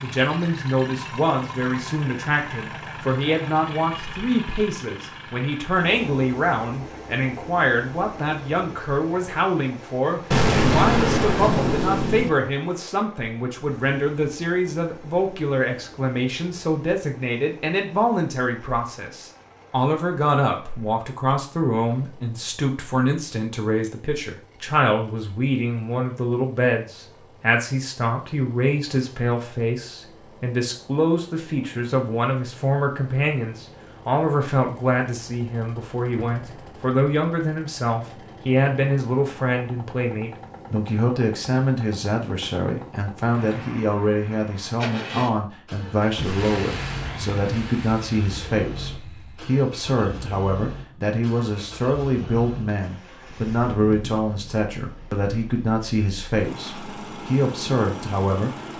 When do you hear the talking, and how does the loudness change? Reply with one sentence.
You can hear the talking from 0.0 to 58.5 s, at a steady volume.